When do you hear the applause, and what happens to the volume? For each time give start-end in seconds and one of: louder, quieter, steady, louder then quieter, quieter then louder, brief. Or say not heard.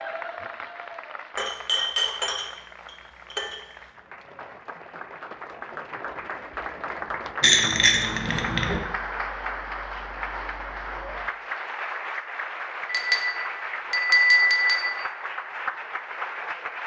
0.0-16.8 louder.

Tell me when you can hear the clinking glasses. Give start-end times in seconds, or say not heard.
1.4-3.6, 7.4-8.8, 12.8-14.8.